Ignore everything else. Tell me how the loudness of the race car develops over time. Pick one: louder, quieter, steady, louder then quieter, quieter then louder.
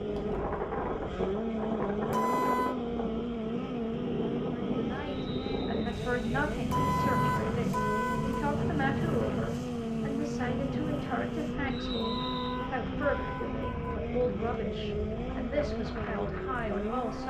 steady.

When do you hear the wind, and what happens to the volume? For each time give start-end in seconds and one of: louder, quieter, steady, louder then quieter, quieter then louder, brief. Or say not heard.
0.0-17.2 quieter.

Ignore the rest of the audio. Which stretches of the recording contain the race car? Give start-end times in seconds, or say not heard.
0.0-17.2.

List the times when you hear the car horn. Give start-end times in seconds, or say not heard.
2.0-2.8, 6.7-8.4, 11.9-13.9.